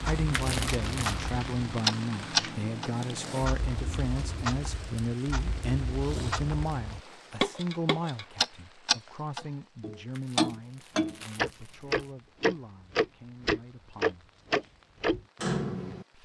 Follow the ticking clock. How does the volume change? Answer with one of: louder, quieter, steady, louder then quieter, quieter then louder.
quieter then louder.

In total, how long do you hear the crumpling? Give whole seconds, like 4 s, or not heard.
3 s.